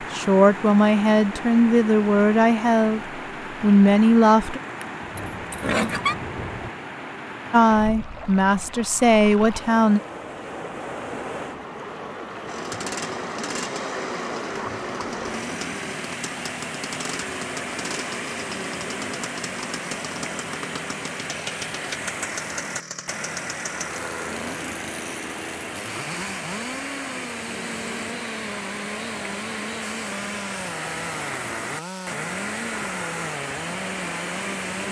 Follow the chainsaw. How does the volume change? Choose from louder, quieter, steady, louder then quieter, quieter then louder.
steady.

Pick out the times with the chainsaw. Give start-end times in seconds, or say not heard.
12.4-34.8.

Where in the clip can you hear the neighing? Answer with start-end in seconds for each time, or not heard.
4.8-6.2.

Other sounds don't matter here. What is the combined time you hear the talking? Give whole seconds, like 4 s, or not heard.
7 s.